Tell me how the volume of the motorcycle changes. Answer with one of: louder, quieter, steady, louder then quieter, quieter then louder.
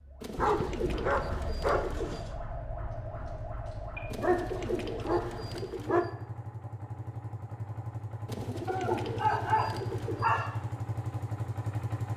louder.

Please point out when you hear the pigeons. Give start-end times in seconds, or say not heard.
0.2-2.2, 4.1-6.1, 8.2-10.3.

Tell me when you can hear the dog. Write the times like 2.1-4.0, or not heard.
0.3-2.4, 4.2-6.0, 8.7-10.6.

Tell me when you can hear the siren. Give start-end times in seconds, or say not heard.
0.0-5.5.